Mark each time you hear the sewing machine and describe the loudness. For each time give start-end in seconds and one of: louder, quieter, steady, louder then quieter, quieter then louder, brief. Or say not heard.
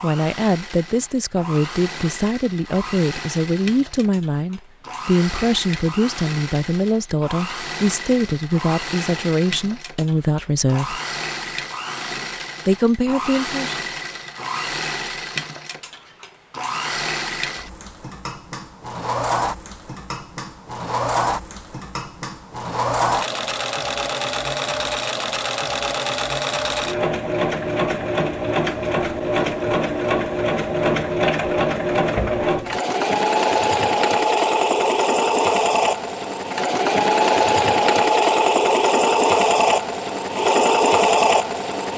0.0-41.9 louder.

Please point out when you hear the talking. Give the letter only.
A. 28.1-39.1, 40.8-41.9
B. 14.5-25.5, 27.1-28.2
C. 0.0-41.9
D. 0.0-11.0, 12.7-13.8
D.